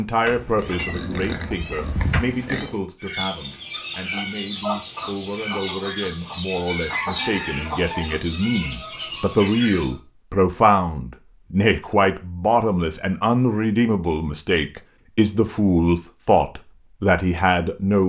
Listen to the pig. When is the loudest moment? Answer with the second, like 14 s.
2 s.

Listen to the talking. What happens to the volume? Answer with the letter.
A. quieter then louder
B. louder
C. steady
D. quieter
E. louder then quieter
B.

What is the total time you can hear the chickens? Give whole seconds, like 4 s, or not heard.
7 s.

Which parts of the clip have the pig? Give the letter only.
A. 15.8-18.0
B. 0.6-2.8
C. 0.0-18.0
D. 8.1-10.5
B.